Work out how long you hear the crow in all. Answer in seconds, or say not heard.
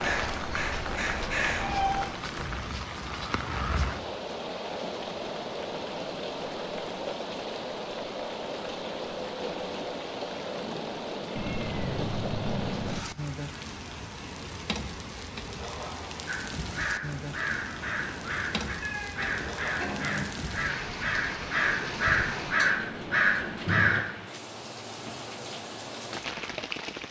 12 s.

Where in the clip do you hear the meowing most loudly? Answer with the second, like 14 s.
2 s.